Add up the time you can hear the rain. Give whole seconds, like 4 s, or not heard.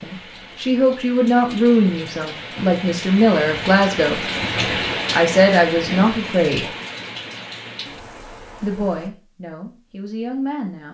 9 s.